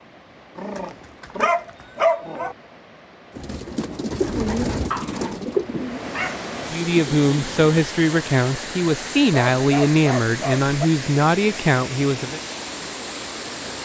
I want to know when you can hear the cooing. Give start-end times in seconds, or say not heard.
3.4-7.8.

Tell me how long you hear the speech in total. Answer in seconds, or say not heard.
6 s.